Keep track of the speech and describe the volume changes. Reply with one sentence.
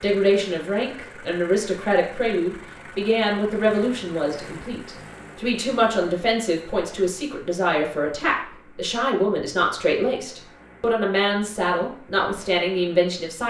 The loudness of the speech stays about the same.